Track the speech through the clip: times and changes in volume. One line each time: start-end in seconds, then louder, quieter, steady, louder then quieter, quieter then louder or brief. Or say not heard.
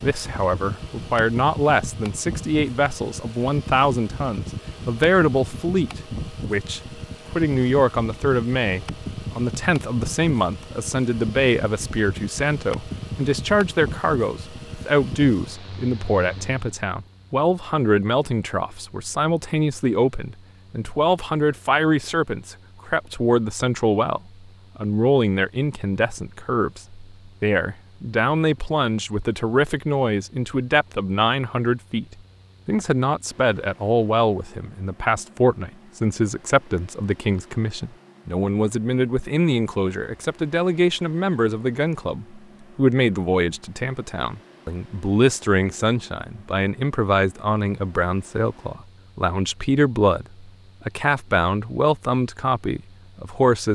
0.0-32.0 steady
32.6-53.7 steady.